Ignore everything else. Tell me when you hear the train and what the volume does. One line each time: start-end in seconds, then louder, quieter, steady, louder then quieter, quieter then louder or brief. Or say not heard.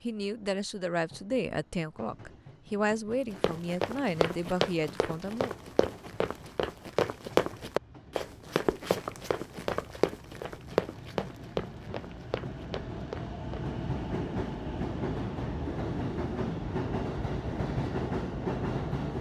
0.0-19.1 louder.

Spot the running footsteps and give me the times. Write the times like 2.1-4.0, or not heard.
3.3-13.7.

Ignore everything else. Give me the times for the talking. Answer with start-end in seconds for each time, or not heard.
0.0-5.5.